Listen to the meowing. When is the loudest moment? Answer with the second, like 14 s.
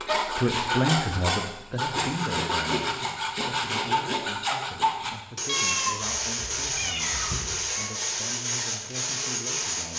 6 s.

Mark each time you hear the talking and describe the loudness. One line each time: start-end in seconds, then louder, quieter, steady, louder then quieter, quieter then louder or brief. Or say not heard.
0.2-9.9 quieter.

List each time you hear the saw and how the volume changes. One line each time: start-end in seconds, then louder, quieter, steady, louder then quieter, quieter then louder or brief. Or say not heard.
0.0-9.9 steady.